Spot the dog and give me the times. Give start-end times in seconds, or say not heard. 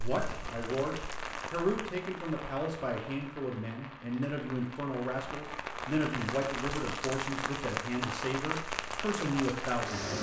not heard.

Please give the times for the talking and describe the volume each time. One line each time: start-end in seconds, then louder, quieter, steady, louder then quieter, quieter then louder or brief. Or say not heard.
0.0-10.1 steady.